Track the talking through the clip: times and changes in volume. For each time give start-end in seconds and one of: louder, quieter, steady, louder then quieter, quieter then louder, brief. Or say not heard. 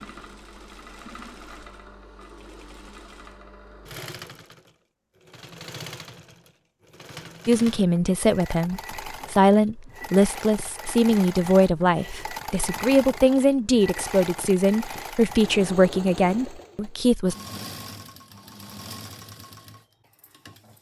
7.5-17.4 steady.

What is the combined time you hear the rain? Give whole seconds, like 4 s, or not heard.
not heard.